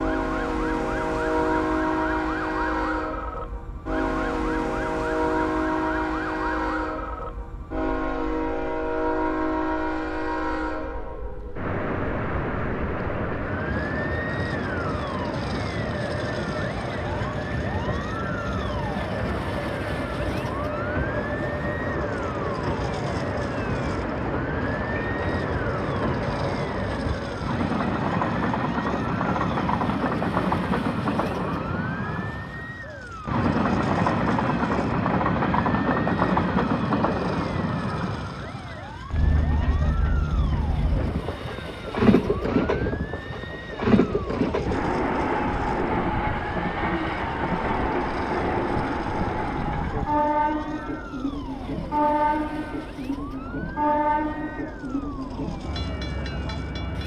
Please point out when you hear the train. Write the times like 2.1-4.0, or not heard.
0.0-57.0.